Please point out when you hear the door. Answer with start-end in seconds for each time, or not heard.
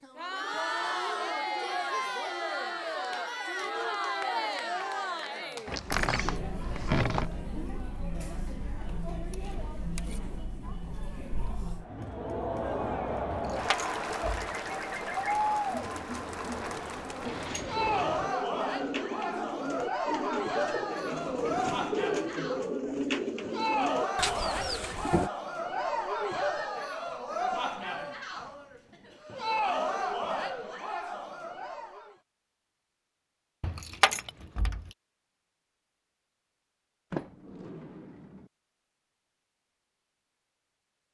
5.7-7.3, 17.2-18.3, 37.1-38.5.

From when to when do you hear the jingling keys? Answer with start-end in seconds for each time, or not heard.
13.3-14.5, 33.6-34.8.